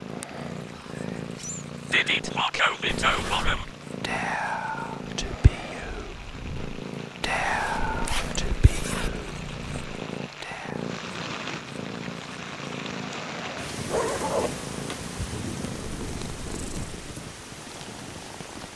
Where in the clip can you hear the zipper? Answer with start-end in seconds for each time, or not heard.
2.9-3.7, 7.3-9.1, 13.8-15.2.